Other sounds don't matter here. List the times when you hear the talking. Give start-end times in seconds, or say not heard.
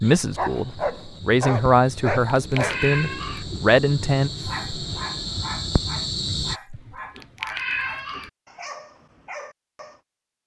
0.0-4.3.